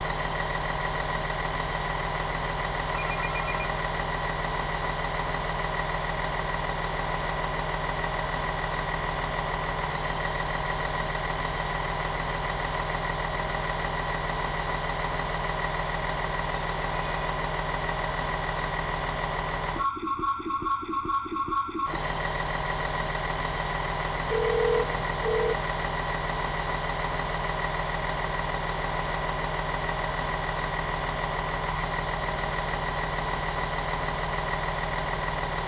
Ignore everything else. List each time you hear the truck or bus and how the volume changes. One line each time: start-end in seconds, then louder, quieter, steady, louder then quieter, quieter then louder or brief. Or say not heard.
0.0-35.6 steady.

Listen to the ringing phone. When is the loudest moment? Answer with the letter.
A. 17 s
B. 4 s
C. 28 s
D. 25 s
D.